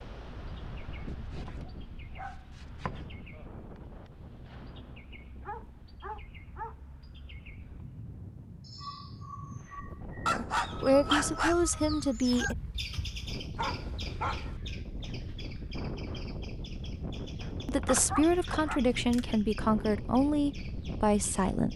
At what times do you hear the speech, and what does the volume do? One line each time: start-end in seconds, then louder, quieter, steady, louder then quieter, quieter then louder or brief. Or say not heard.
10.3-12.6 brief
17.6-21.7 steady.